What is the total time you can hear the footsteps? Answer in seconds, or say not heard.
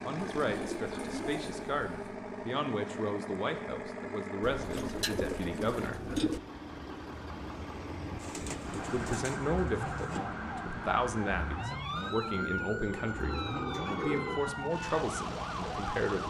not heard.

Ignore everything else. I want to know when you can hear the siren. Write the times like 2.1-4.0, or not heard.
8.6-16.2.